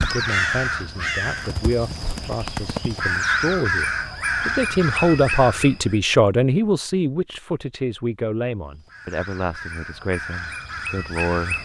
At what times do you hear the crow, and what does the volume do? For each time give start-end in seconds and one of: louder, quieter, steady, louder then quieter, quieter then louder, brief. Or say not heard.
0.0-6.0 quieter then louder
8.7-11.5 brief.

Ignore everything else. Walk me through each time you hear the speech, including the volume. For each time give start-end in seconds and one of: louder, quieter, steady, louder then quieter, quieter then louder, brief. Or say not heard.
0.0-11.5 louder then quieter.